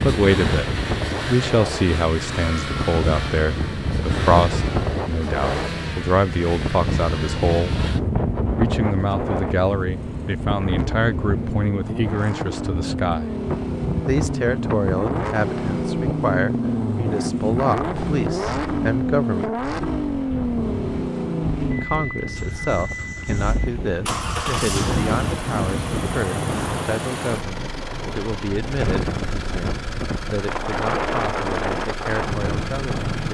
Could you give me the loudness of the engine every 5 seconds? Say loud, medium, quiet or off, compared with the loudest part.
medium, medium, medium, loud, loud, medium, medium.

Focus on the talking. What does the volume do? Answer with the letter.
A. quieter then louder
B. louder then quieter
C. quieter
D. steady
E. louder
C.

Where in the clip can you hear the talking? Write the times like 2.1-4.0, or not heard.
0.0-7.8, 8.6-13.3, 14.1-19.7, 21.8-33.3.